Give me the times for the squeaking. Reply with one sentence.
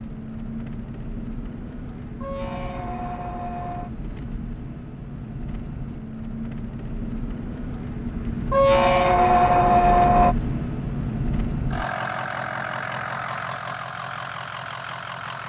The squeaking can be heard from 2.2 to 3.9 s and from 8.5 to 10.3 s.